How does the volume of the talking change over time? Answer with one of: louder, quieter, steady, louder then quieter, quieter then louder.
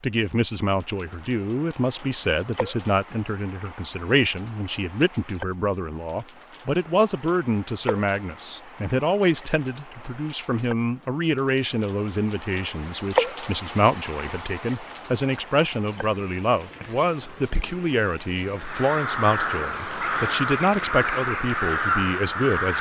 steady.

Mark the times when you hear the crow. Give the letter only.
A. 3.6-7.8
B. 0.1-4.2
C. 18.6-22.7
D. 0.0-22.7
C.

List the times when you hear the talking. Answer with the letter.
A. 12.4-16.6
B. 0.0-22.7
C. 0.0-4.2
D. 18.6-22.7
B.